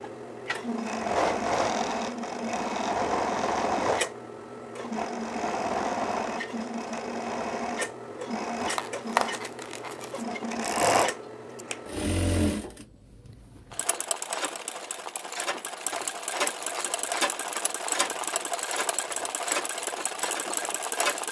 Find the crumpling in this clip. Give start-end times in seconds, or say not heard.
8.6-10.2.